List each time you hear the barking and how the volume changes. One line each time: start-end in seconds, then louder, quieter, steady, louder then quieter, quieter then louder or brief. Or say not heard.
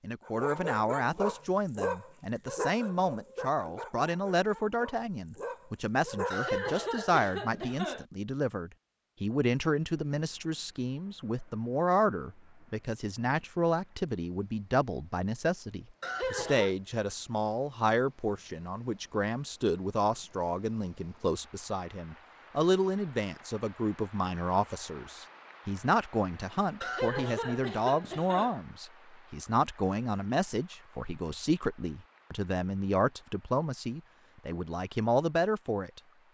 0.2-6.5 quieter then louder.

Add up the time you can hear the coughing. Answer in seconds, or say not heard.
4 s.